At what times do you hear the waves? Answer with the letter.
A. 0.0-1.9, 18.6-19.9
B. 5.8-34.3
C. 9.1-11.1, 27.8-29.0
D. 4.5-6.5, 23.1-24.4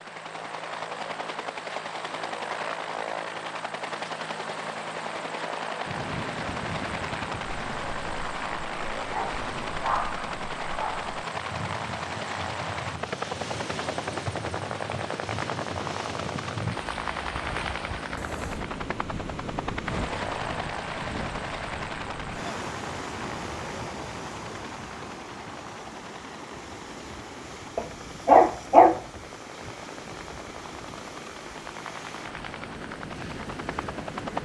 B.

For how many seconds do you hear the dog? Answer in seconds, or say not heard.
3 s.